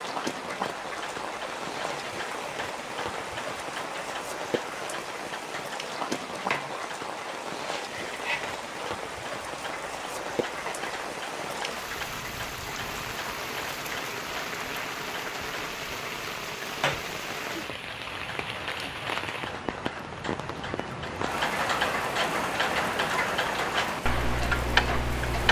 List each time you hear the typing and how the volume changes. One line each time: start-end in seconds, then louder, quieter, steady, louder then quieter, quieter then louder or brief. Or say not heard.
not heard.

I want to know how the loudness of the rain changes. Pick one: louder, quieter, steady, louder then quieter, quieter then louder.
steady.